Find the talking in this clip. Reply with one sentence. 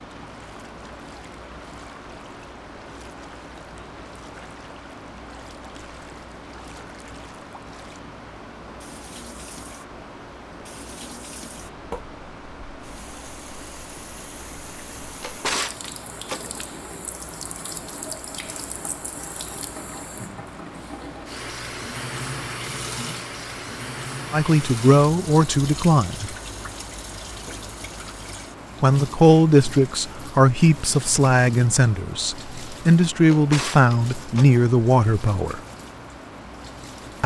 You can hear the talking from 24.3 to 26.3 s and from 28.8 to 35.6 s.